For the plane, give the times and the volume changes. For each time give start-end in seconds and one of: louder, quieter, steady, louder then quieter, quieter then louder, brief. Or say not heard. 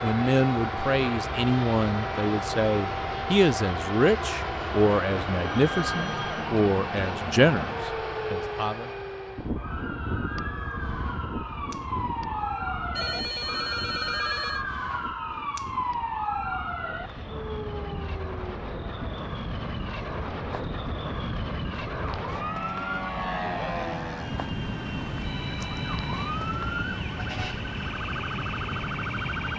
0.0-29.5 quieter then louder.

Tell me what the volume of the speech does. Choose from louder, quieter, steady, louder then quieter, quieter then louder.
steady.